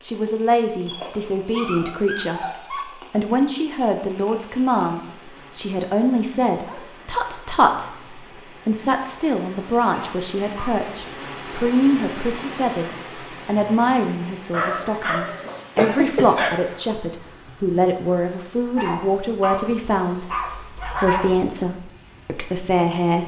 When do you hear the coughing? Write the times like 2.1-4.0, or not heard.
15.8-16.6.